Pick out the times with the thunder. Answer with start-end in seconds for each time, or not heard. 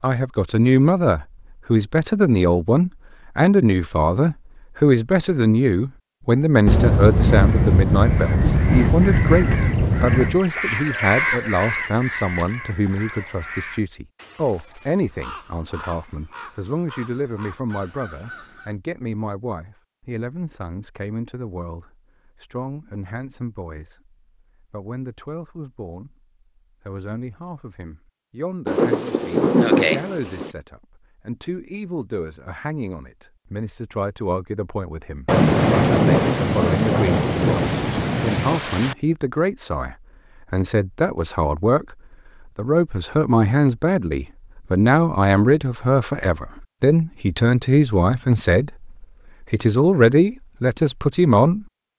6.7-10.4, 28.6-30.5, 35.2-39.0.